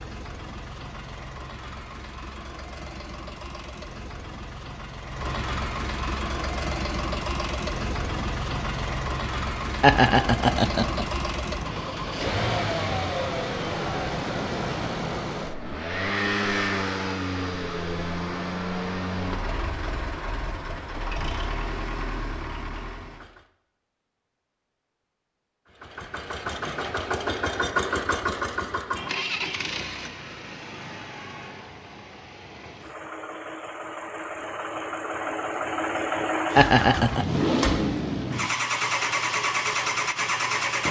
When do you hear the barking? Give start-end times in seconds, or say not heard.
not heard.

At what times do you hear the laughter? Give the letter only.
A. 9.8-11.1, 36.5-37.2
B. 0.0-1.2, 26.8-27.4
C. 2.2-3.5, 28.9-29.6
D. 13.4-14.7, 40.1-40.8
A.